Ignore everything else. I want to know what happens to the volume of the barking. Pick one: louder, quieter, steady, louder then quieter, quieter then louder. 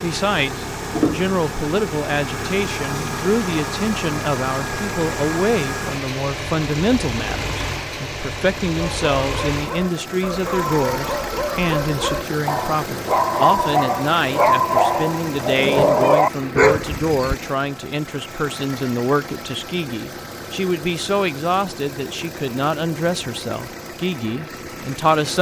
louder.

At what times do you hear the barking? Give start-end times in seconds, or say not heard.
8.8-17.4.